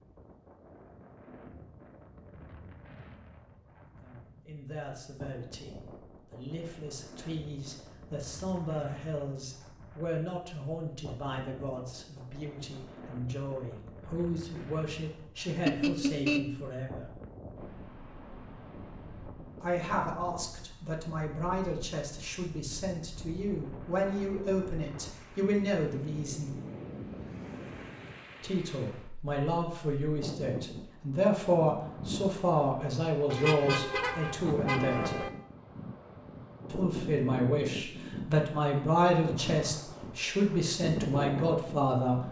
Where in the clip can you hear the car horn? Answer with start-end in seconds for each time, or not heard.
15.7-16.6, 33.3-35.3.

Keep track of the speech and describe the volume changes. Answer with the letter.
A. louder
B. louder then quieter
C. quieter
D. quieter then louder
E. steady
A.